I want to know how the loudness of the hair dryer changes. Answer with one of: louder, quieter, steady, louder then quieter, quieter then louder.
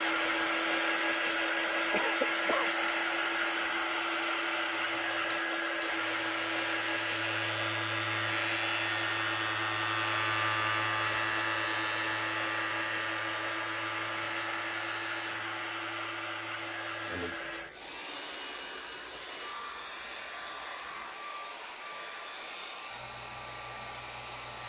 quieter.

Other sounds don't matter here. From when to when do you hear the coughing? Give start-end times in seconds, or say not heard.
1.9-2.7.